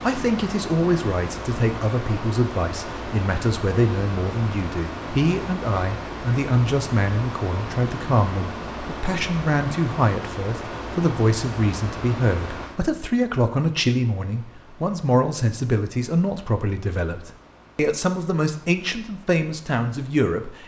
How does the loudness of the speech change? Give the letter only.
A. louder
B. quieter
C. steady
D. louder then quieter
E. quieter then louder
C.